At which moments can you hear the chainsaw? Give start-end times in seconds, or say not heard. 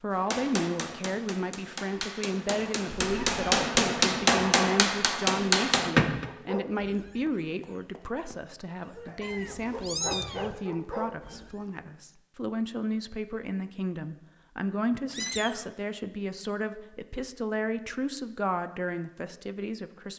not heard.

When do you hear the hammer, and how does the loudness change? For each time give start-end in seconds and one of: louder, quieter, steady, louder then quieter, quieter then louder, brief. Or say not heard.
0.1-6.2 louder.